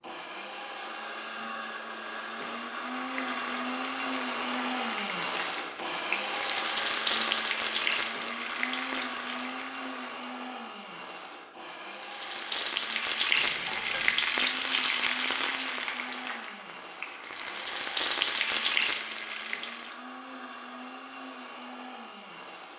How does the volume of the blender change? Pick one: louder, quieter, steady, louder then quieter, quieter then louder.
quieter.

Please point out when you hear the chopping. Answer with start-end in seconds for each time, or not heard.
not heard.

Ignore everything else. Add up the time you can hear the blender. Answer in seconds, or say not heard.
23 s.